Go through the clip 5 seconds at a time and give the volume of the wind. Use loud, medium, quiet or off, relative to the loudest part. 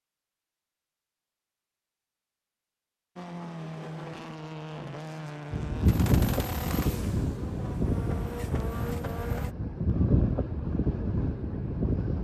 off, loud, loud.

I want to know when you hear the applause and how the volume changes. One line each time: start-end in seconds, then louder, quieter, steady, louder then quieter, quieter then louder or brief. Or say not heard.
not heard.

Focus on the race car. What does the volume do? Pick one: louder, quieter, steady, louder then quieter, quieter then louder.
quieter then louder.